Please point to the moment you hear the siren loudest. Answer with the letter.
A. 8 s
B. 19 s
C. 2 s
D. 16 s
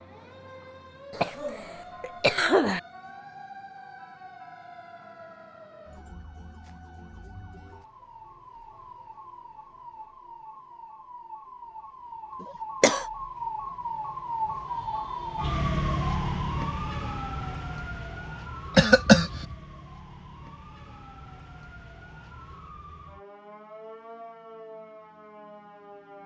D.